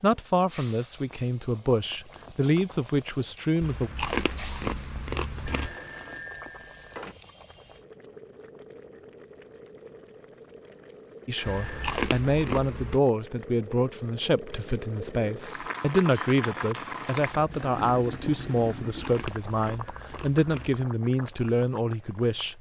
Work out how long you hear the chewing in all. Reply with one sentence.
The chewing can be heard for 6 seconds in total.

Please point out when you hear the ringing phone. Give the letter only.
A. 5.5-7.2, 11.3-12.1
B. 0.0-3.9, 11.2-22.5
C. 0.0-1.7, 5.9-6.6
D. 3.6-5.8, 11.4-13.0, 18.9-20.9
A.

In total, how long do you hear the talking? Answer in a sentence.
The talking can be heard for 15 seconds in total.